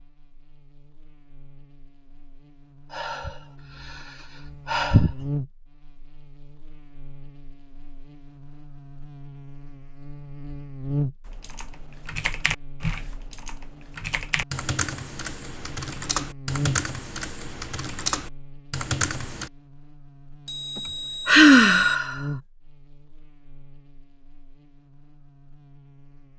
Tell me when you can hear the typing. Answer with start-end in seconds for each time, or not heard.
11.2-19.5.